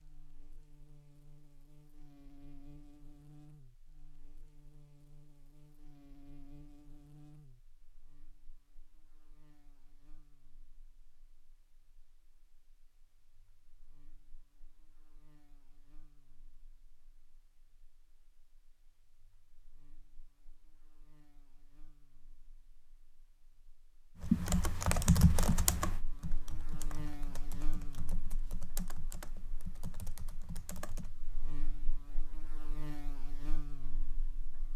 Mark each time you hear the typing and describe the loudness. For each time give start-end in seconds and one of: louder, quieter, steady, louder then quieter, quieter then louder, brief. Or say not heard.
24.2-31.1 quieter.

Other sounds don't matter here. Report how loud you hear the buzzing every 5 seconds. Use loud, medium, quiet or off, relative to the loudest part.
medium, medium, quiet, quiet, quiet, loud, loud.